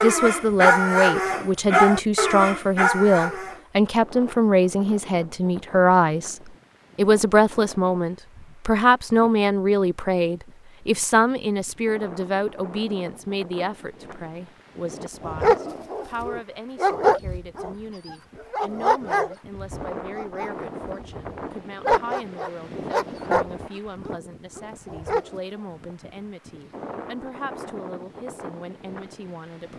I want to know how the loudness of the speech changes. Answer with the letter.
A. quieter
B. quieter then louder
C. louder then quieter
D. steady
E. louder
A.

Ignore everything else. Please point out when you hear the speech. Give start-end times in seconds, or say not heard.
0.0-29.7.